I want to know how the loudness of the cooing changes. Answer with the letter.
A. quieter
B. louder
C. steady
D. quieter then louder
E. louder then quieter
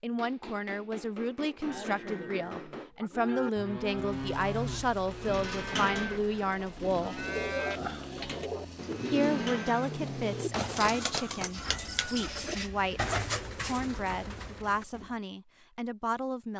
C.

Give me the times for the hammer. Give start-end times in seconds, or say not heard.
0.1-2.9, 10.5-11.5.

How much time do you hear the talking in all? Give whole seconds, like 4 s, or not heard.
15 s.